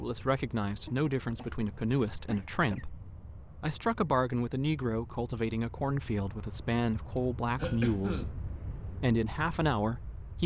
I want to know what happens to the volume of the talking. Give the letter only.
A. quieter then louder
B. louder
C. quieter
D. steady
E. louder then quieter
D.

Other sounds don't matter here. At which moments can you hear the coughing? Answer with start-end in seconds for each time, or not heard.
0.8-2.9, 7.5-8.4.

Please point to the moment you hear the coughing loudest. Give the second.
8 s.